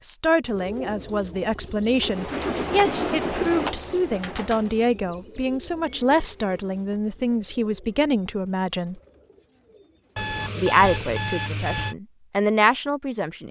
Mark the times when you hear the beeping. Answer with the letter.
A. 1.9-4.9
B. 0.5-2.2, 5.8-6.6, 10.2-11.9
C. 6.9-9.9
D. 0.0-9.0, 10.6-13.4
B.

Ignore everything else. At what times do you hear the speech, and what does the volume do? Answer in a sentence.
You can hear the speech from 0.0 to 9.0 s, at a steady volume; and briefly from 10.6 to 13.4 s.